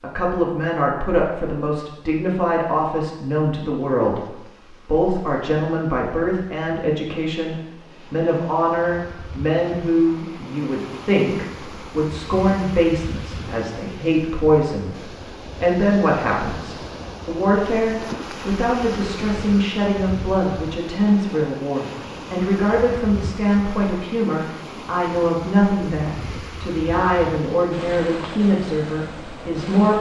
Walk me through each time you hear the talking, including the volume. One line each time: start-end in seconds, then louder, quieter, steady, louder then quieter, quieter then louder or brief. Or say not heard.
0.0-29.9 steady.